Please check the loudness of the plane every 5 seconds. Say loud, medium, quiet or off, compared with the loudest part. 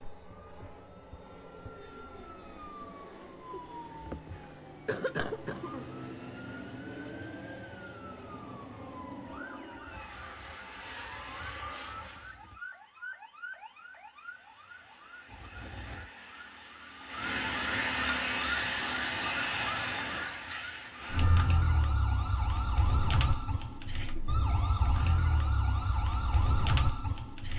medium, loud, loud, off, off, off.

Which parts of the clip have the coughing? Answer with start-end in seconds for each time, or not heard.
3.5-5.8.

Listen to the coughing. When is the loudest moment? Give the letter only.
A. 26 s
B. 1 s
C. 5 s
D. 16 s
C.